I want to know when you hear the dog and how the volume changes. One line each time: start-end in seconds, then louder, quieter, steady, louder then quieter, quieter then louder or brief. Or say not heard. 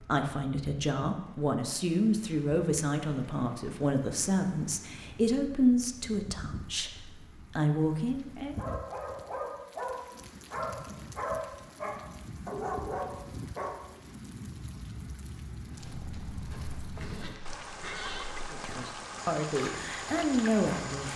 8.6-13.8 steady.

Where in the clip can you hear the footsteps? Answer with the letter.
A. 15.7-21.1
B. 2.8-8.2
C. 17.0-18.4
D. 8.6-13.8
A.